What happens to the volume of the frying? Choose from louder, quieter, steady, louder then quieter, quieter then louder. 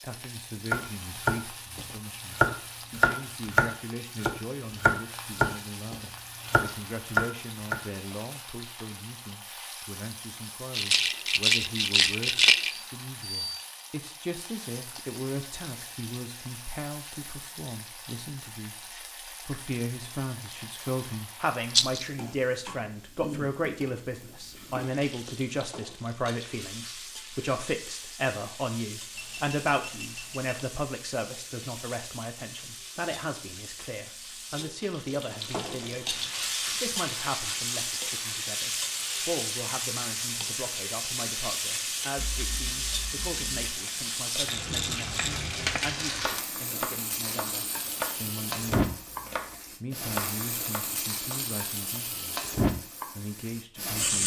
louder.